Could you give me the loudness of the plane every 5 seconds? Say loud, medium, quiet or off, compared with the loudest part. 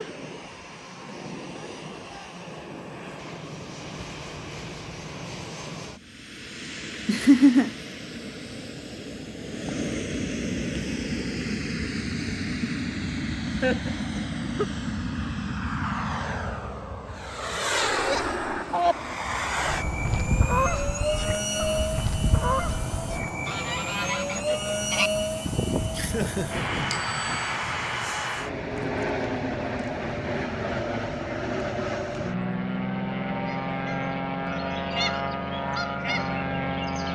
medium, medium, loud, loud, loud, loud, loud, loud.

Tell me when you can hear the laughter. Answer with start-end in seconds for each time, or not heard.
7.0-7.7, 13.6-14.7, 25.9-26.8.